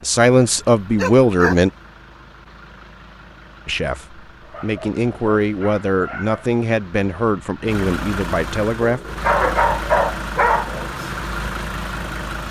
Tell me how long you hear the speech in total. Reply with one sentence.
The speech can be heard for 7 seconds in total.